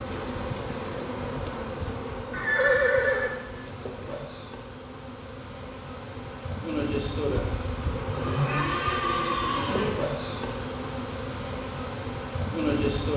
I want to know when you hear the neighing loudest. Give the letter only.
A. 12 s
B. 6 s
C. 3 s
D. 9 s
C.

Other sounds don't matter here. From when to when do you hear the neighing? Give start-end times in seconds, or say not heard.
2.3-3.4, 8.1-10.0.